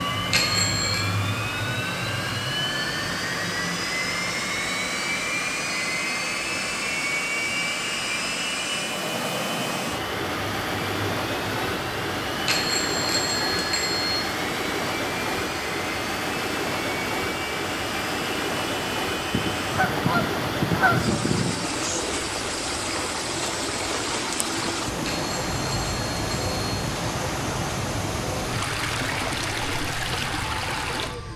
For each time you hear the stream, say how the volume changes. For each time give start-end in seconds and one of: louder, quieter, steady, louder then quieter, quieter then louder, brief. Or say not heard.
0.0-31.3 louder.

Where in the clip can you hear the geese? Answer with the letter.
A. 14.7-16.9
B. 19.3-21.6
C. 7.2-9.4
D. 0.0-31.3
B.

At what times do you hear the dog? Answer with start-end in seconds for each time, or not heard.
not heard.